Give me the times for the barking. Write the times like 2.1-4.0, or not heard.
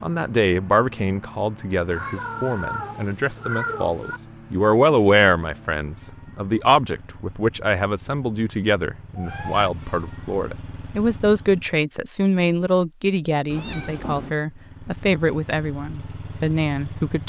not heard.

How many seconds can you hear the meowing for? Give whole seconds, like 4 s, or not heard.
4 s.